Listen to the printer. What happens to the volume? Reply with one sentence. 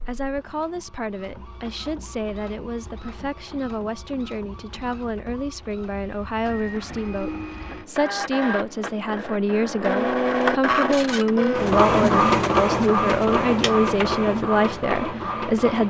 The loudness of the printer goes up.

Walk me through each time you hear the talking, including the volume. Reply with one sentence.
The talking can be heard from 0.1 to 15.8 s, getting louder.